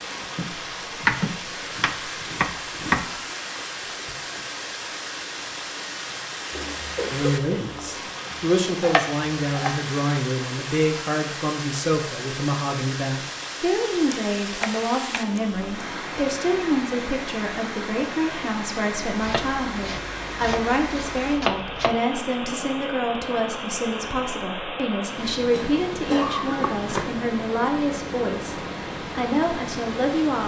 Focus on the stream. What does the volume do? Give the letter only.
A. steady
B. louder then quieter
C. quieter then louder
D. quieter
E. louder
A.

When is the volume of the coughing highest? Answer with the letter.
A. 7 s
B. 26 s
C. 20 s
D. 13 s
B.